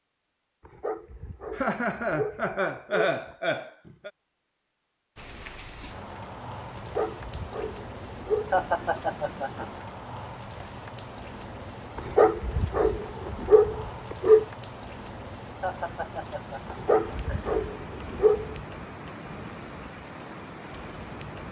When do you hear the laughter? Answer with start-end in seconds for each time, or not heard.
1.5-4.1, 8.5-9.8, 15.6-17.6.